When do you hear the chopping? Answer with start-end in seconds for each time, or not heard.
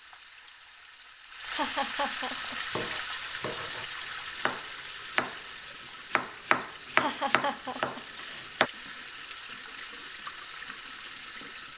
2.7-8.7.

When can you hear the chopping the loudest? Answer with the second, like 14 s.
7 s.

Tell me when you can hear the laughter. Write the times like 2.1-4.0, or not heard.
1.5-2.8, 7.0-8.4.